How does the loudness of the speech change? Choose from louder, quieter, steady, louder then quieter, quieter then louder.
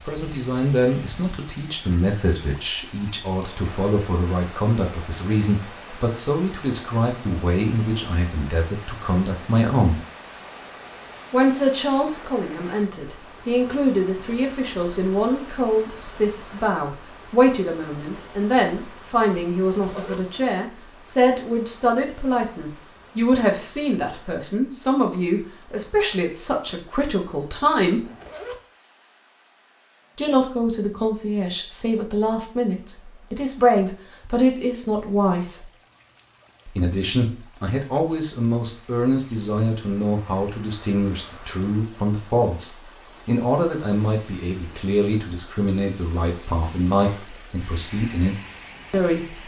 steady.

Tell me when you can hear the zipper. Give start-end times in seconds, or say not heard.
19.8-20.2, 28.0-28.6.